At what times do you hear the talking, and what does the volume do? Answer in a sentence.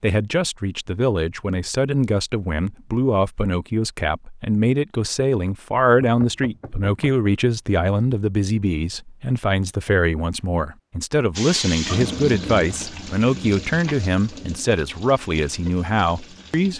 The talking can be heard from 0.0 to 16.7 s, at a steady volume.